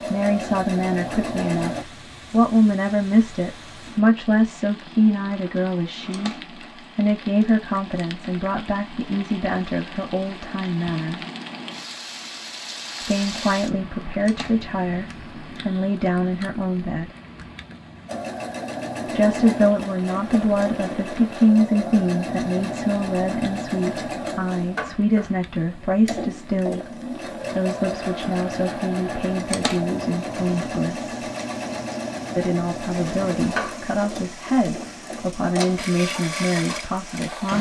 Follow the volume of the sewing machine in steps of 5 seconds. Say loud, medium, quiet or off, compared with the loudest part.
loud, off, off, loud, loud, loud, loud, loud.